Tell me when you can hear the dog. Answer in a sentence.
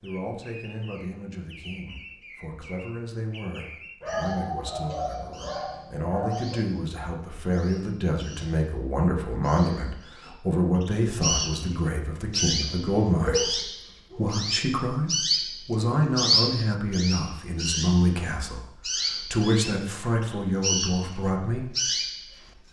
You can hear the dog from 4.0 to 6.6 s and from 13.2 to 14.2 s.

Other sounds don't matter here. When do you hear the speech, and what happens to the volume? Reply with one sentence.
The speech can be heard from 0.0 to 21.6 s, getting louder.